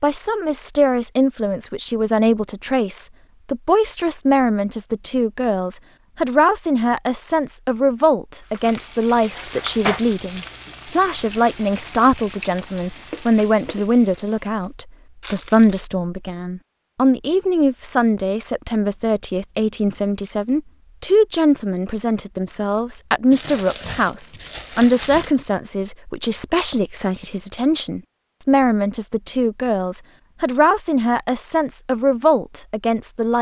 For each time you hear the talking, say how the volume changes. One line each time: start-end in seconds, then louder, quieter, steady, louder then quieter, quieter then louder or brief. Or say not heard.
0.0-33.3 steady.